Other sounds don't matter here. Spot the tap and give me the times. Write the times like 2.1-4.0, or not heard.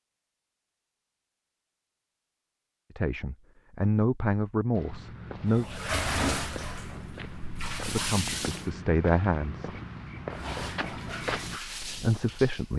5.5-8.7, 10.3-12.7.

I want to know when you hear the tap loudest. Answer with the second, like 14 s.
6 s.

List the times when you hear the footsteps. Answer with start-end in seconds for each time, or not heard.
4.7-11.6.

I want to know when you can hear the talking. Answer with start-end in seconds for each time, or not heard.
3.0-5.7, 7.8-9.7, 11.8-12.7.